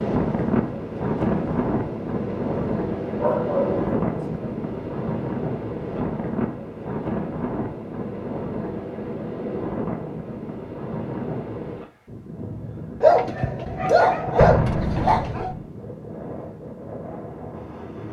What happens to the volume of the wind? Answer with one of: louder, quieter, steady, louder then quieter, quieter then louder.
quieter.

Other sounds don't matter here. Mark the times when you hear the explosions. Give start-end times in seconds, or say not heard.
14.3-15.6.